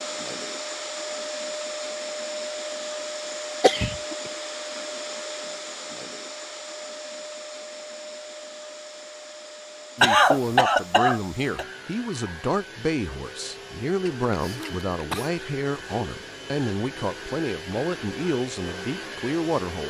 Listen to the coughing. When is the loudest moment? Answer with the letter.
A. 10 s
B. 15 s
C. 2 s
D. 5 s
A.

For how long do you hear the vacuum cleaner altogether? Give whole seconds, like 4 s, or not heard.
20 s.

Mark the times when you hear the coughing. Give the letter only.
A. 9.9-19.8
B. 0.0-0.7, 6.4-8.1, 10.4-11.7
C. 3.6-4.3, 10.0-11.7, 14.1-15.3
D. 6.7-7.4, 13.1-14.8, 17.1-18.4
C.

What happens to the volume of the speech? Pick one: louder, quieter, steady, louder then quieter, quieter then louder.
steady.